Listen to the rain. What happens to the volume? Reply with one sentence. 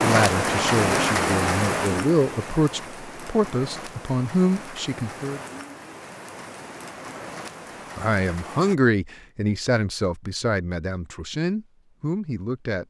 The loudness of the rain goes down.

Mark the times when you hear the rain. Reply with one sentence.
The rain can be heard from 0.0 to 8.8 s.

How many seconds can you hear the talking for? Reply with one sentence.
You can hear the talking for 10 seconds altogether.